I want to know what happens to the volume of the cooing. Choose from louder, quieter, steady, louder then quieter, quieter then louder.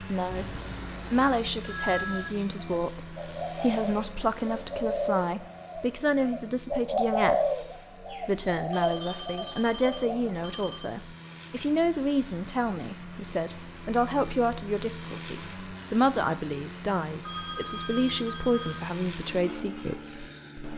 louder then quieter.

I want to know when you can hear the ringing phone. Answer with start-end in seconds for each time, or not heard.
0.3-2.3, 8.7-10.9, 17.2-18.9.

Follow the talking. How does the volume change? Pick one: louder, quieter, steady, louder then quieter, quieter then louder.
steady.